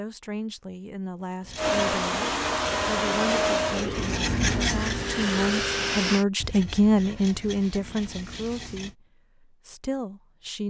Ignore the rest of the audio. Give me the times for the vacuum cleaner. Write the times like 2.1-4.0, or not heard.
1.6-6.2.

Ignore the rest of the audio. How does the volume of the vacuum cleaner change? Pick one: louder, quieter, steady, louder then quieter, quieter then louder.
quieter then louder.